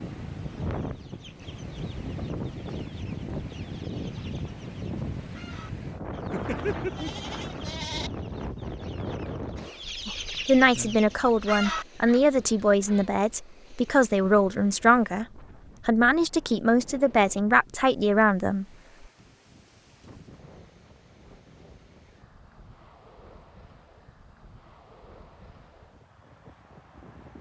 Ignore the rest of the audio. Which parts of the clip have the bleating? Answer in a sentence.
You can hear the bleating from 6.3 to 8.1 s.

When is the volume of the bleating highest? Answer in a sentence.
The volume of the bleating peaks at 7 seconds.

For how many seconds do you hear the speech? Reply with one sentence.
You can hear the speech for 8 seconds altogether.